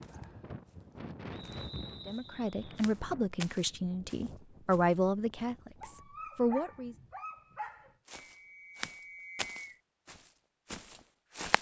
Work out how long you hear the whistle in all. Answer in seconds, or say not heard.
3 s.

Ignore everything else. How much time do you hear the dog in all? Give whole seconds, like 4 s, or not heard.
2 s.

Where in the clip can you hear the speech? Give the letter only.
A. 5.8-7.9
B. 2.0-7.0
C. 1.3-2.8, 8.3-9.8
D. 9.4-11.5
B.